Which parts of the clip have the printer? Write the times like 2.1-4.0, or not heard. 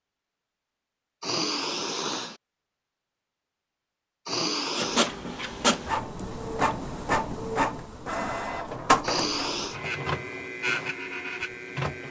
4.8-12.0.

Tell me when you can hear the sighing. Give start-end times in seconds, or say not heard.
1.2-2.4, 4.2-5.1, 9.0-9.8.